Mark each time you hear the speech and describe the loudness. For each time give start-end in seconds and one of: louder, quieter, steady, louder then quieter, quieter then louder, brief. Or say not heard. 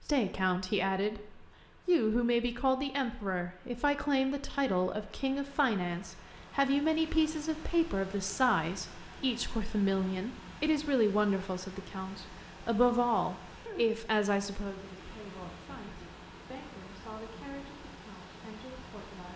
0.0-19.3 quieter.